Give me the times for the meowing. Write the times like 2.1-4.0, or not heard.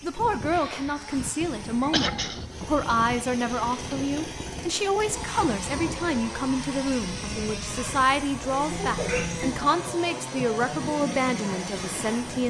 0.5-2.2, 8.7-9.6.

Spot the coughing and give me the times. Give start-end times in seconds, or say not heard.
1.9-2.5.